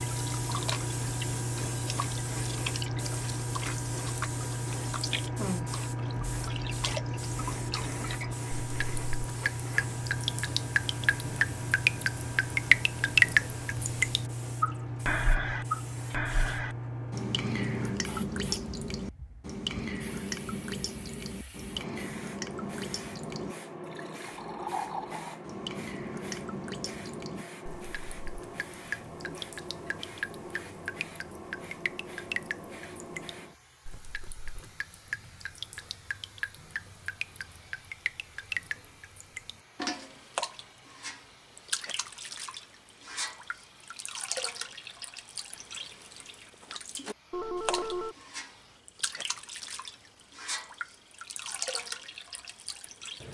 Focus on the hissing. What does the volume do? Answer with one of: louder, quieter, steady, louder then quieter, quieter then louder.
quieter.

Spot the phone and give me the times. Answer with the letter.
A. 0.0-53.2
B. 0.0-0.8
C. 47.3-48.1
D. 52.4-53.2
C.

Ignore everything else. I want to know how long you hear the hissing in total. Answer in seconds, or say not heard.
53 s.